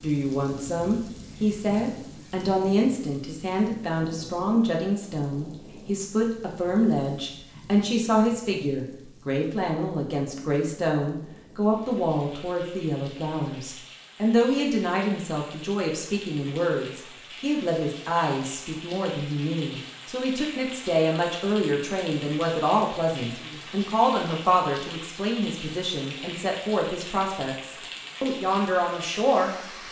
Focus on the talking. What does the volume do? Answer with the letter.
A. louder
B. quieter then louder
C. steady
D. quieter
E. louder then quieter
C.